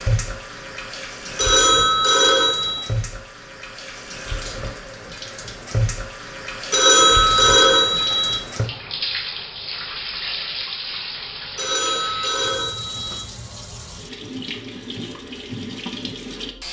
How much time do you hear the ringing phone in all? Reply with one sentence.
The ringing phone can be heard for 5 seconds in total.